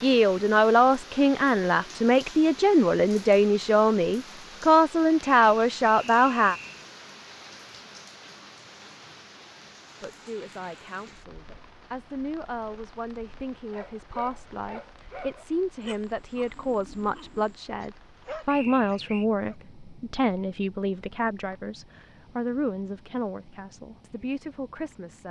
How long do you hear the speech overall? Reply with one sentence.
The speech can be heard for 22 seconds in total.